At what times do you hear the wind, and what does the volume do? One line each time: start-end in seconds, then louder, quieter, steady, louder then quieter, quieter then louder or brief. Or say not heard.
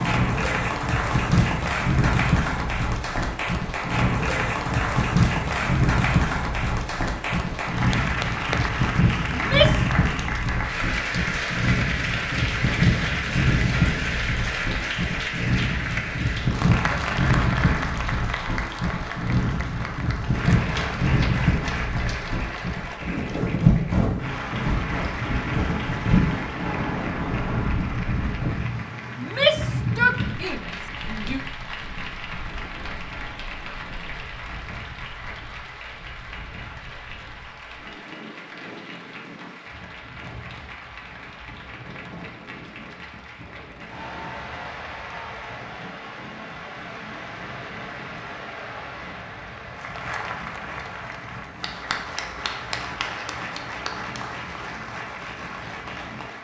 0.0-56.3 quieter.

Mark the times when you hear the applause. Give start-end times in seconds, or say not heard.
0.0-56.3.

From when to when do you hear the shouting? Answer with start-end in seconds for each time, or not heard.
9.3-9.9, 29.1-31.4.